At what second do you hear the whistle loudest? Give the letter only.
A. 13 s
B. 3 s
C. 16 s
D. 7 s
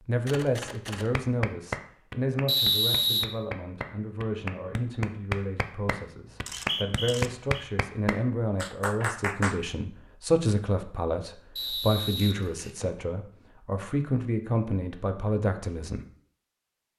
B.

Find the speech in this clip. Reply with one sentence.
The speech can be heard from 0.1 to 16.1 s.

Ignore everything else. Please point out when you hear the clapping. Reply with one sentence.
The clapping can be heard from 1.1 to 9.6 s.